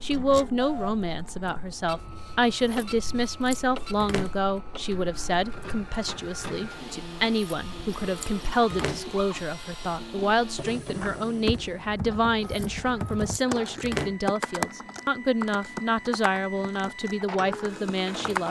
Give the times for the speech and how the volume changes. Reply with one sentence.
You can hear the speech from 0.0 to 18.4 s, at a steady volume.